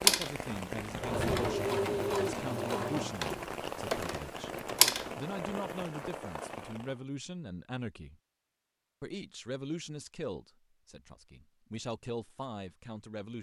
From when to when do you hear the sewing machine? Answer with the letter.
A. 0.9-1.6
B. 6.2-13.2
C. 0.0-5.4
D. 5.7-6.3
C.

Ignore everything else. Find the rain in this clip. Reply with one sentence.
The rain can be heard from 0.0 to 7.0 s.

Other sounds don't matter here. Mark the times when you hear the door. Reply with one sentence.
You can hear the door from 0.9 to 1.6 s.